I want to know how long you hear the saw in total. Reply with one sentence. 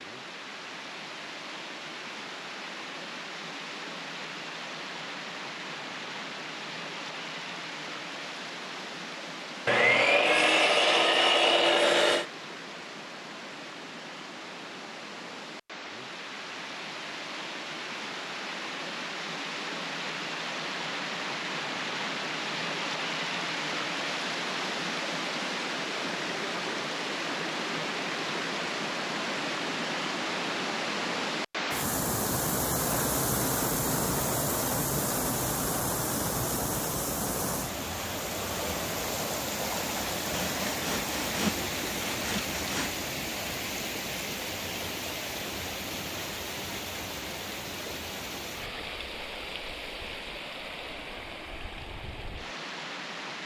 The saw can be heard for 5 seconds in total.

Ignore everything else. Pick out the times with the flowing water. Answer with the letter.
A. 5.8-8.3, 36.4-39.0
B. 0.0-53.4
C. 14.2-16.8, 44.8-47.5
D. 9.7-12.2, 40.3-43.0
B.